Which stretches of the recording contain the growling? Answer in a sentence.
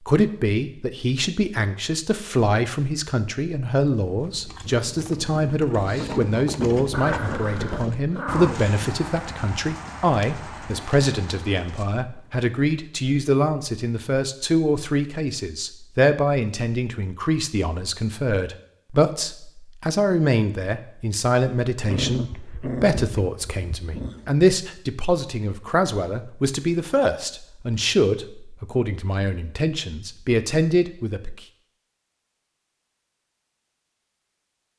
You can hear the growling from 6.9 to 8.8 s and from 21.8 to 24.4 s.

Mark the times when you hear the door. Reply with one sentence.
You can't hear the door here.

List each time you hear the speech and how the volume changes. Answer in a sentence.
You can hear the speech from 0.1 to 31.4 s, at a steady volume.